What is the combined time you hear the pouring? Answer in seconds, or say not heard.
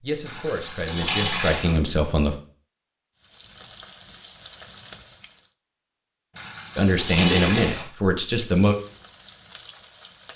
3 s.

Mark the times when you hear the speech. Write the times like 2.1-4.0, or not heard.
0.0-2.4, 6.8-8.8.